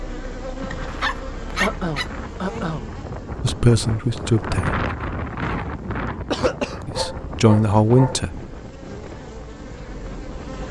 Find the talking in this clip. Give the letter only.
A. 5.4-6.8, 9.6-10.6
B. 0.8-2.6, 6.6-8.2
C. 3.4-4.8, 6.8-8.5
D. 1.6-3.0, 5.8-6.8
C.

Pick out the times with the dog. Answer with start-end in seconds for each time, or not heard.
0.8-2.6, 6.6-8.2.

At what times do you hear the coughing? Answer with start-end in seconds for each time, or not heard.
1.6-3.0, 5.8-6.8.